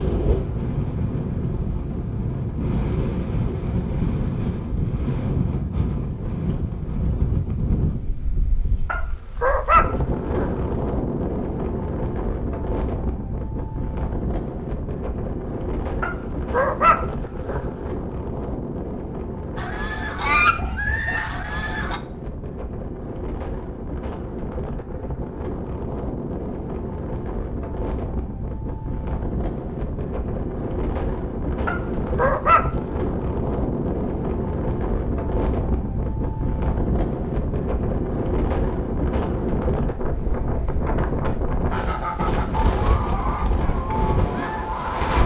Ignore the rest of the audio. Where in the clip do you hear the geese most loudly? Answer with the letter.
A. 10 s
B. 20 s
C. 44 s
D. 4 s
B.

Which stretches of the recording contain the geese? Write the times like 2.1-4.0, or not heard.
19.6-22.0, 41.7-45.2.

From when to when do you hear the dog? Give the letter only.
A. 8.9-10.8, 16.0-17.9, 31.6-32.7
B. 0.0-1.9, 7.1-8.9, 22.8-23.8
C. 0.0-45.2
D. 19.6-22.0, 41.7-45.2
A.